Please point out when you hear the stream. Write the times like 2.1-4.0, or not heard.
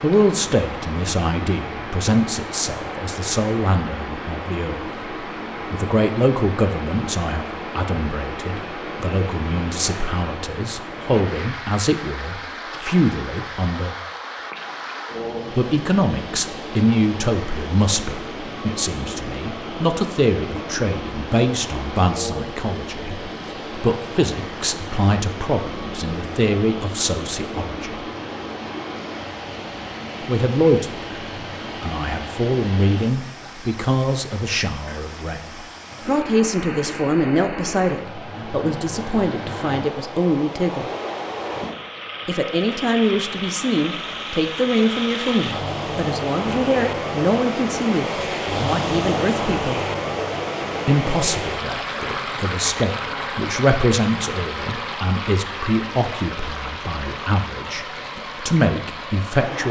0.0-59.6.